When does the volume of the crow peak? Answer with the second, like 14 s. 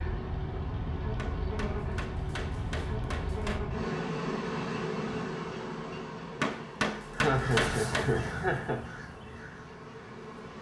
8 s.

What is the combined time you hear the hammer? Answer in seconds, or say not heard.
4 s.